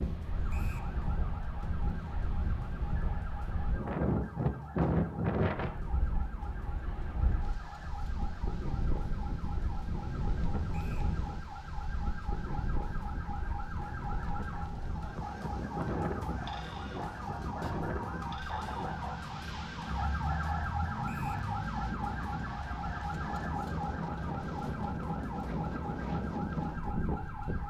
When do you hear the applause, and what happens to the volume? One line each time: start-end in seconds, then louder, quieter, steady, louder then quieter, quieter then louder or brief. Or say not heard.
not heard.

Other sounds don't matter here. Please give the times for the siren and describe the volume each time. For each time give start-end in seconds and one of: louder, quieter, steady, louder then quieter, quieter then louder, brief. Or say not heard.
0.0-27.6 louder.